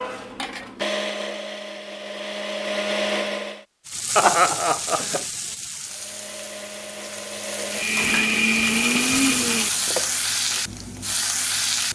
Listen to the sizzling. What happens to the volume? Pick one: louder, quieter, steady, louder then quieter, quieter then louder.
quieter then louder.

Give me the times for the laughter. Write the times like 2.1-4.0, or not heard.
4.2-5.2.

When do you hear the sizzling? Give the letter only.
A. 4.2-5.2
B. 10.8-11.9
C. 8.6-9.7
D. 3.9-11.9
D.